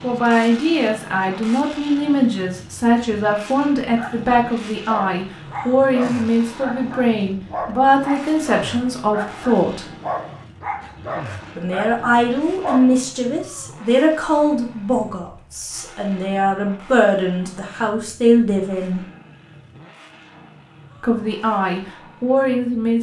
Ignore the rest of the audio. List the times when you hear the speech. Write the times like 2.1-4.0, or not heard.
0.0-9.8, 11.6-19.0, 21.0-22.9.